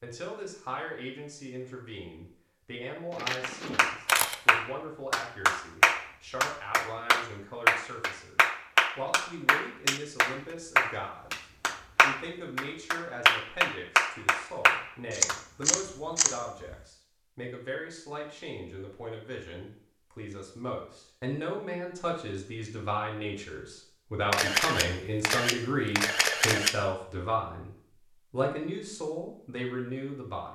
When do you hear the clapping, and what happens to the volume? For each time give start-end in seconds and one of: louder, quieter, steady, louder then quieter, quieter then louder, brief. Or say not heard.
3.4-15.7 steady.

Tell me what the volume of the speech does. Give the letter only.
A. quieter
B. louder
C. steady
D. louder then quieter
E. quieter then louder
B.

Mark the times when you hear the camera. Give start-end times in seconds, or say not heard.
3.1-4.3, 15.1-16.8, 24.3-26.8.